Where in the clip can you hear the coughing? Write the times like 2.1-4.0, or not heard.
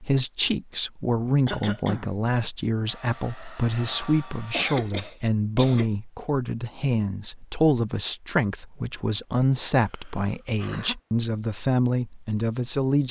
1.4-2.1, 4.5-5.9, 9.2-11.0.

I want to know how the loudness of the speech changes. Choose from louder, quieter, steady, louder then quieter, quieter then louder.
steady.